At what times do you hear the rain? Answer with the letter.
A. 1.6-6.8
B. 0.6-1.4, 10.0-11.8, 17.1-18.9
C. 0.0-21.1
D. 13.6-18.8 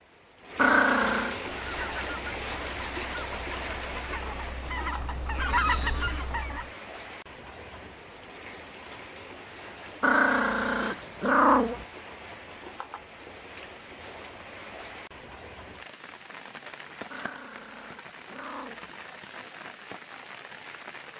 C.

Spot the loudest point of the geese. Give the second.
6 s.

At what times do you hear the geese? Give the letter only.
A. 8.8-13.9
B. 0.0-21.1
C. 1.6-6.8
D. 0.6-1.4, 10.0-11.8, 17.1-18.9
C.